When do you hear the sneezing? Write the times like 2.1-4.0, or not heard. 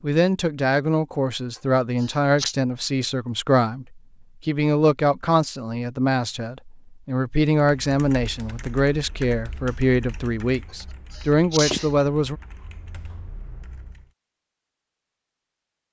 1.6-2.5, 10.7-11.9.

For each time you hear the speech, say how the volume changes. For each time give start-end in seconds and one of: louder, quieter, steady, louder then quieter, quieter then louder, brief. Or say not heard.
0.0-12.3 steady.